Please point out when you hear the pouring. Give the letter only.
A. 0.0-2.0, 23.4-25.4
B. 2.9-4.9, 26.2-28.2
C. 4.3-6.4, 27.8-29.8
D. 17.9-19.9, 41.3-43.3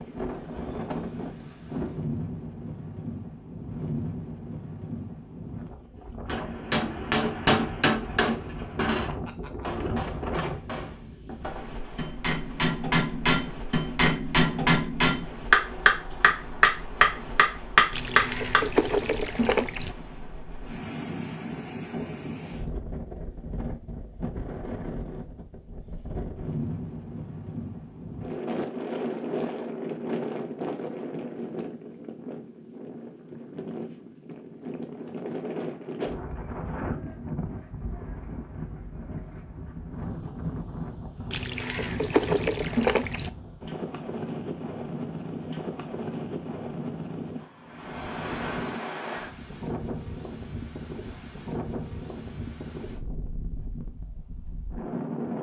D.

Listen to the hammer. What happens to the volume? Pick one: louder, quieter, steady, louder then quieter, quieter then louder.
quieter then louder.